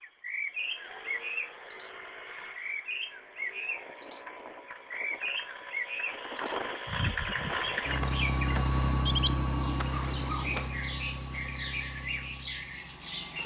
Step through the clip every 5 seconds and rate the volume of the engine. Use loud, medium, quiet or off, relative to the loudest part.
quiet, loud, medium.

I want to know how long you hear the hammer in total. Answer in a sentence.
The hammer can be heard for 3 seconds in total.